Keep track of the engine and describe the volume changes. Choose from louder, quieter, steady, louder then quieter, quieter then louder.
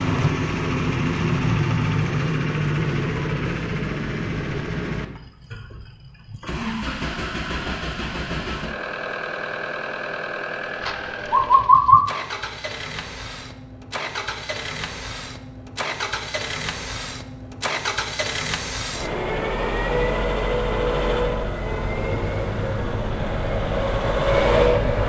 quieter then louder.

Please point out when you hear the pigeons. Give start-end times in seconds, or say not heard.
10.8-12.0.